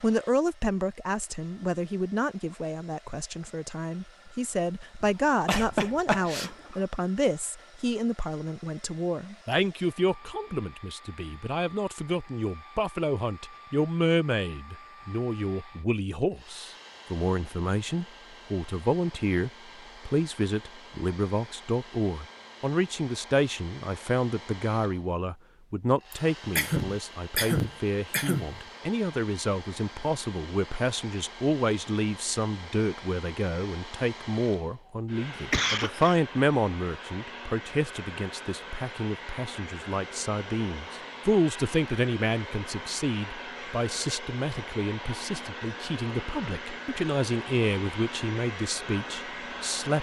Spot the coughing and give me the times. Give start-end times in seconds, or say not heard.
5.0-6.8, 26.1-28.6, 35.4-36.1.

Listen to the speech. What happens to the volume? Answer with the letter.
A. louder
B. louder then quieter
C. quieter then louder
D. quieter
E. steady
E.